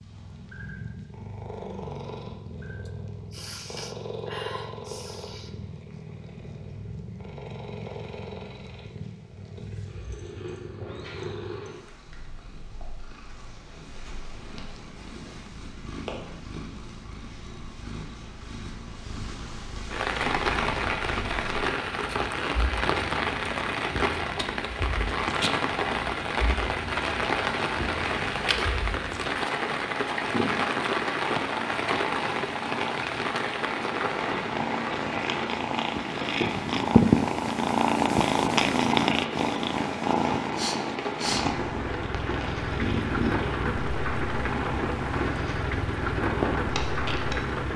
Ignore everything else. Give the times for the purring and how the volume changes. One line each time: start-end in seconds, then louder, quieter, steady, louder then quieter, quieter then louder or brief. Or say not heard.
0.0-47.6 louder.